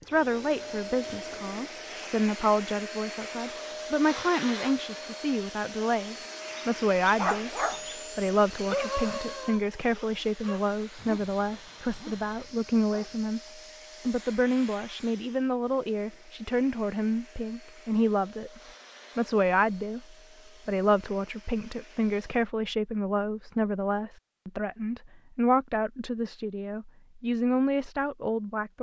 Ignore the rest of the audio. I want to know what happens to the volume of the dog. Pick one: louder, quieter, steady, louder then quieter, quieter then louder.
quieter.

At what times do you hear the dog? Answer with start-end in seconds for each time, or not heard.
6.5-13.3.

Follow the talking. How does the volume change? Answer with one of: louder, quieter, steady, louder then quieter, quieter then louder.
steady.